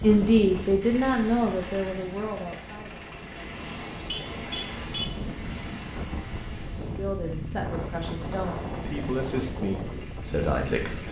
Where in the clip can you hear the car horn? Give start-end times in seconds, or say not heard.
4.0-5.2.